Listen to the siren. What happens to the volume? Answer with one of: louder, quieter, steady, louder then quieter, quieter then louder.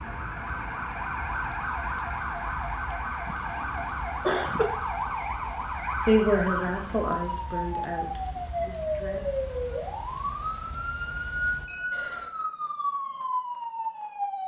steady.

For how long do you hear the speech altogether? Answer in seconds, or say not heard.
3 s.